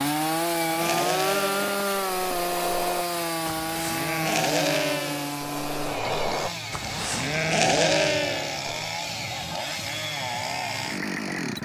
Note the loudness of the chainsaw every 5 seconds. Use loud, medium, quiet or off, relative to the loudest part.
loud, medium, loud.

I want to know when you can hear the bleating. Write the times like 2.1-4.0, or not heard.
0.6-8.8.